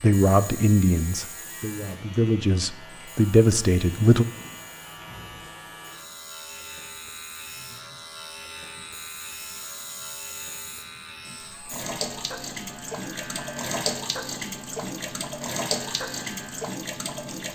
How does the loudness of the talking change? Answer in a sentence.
The volume of the talking goes down, then up.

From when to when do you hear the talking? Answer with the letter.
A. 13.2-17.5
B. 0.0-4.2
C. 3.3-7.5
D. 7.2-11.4
B.